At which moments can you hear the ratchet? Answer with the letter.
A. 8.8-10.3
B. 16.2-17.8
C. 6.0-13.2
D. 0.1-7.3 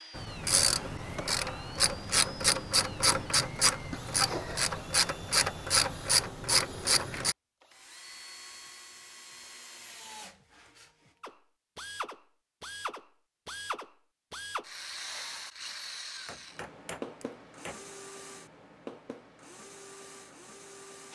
D.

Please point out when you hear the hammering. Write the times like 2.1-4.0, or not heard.
16.2-17.8.